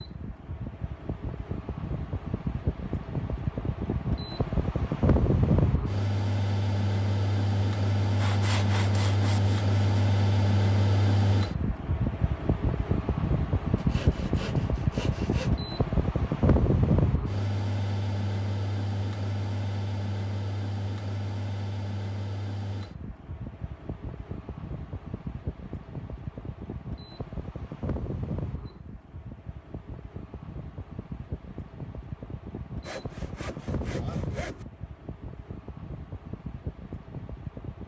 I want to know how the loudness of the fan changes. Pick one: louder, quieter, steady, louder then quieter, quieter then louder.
quieter.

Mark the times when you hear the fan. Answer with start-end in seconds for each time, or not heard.
0.0-37.8.